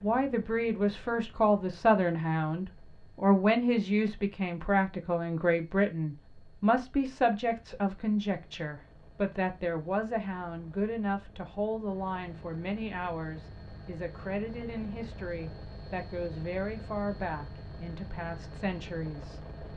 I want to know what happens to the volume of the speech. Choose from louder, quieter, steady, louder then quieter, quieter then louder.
quieter.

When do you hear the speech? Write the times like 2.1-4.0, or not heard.
0.0-19.5.